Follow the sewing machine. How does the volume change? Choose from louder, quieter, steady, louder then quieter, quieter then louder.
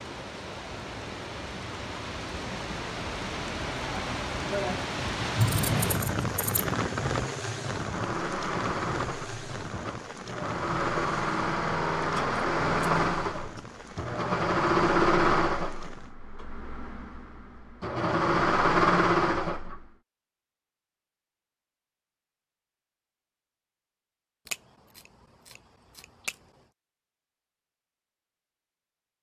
louder.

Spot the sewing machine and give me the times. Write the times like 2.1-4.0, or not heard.
7.7-19.9.